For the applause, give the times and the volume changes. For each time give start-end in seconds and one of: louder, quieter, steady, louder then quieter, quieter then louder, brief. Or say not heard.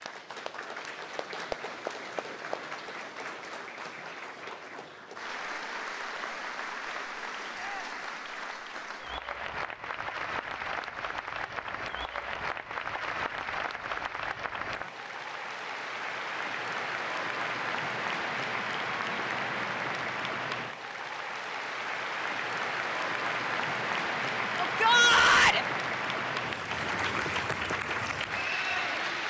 0.0-29.2 louder.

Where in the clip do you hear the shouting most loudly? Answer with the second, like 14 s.
25 s.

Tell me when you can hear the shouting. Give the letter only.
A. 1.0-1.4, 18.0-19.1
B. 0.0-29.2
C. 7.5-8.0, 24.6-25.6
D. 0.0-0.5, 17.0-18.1
C.